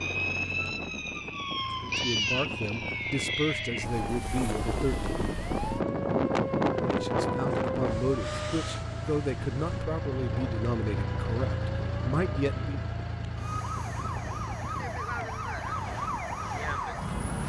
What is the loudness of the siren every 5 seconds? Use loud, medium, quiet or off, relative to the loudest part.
loud, loud, medium, loud.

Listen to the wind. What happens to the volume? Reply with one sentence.
The loudness of the wind goes up, then down.